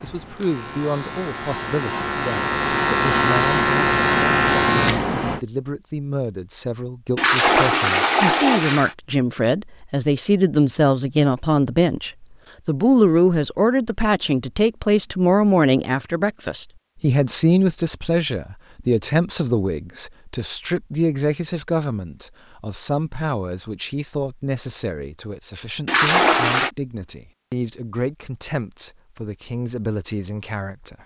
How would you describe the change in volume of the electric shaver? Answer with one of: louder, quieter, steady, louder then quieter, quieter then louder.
louder.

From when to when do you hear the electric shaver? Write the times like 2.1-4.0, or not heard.
0.0-5.4.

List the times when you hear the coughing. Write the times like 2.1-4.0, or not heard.
not heard.